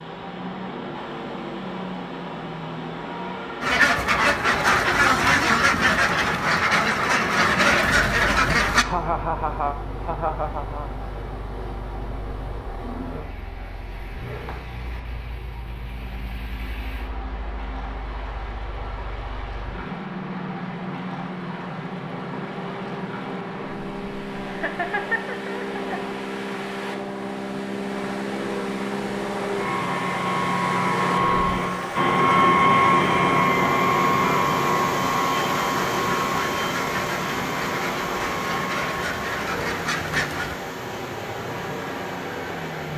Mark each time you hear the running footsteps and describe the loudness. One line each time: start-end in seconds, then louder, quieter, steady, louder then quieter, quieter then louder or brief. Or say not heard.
not heard.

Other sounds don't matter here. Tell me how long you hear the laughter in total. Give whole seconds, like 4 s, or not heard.
4 s.